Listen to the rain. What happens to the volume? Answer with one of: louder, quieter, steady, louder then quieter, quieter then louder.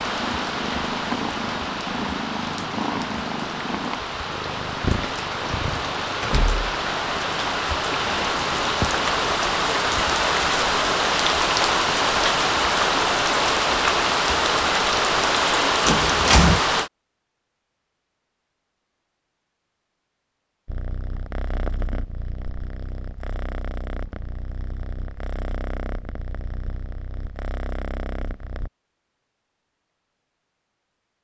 louder.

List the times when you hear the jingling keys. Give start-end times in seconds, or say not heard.
not heard.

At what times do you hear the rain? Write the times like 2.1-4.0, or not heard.
0.0-16.9.